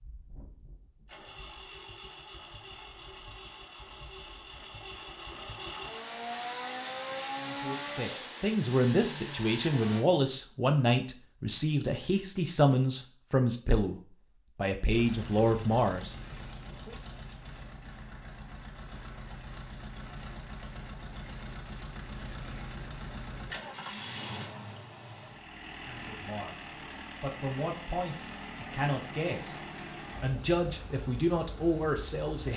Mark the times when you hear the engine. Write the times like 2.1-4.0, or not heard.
0.0-10.1, 14.8-32.5.